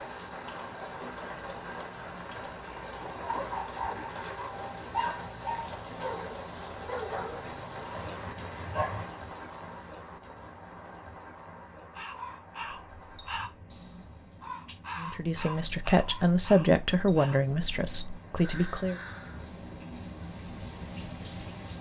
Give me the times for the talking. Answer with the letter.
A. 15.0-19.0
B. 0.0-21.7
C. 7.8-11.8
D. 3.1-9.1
A.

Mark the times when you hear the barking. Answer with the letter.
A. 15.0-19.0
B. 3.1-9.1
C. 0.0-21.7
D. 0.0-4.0
B.